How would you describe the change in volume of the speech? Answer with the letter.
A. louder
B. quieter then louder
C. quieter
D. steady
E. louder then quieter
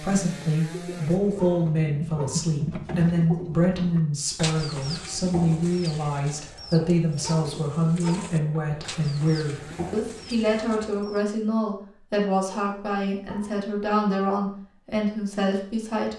D.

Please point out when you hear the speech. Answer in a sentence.
The speech can be heard from 0.0 to 16.1 s.